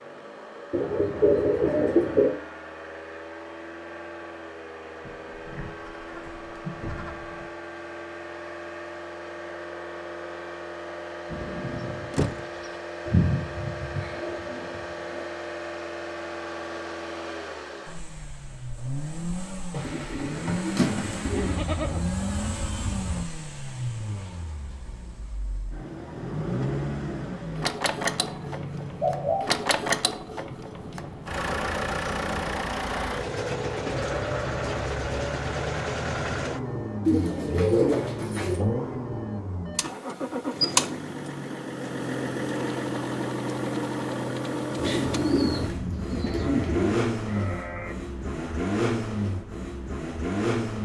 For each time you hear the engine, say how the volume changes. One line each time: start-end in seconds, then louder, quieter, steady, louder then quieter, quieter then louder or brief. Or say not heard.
0.0-50.8 louder.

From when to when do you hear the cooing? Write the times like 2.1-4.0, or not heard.
0.7-2.4, 13.1-15.2, 19.7-21.6, 27.9-29.4, 37.0-38.6, 44.8-47.0.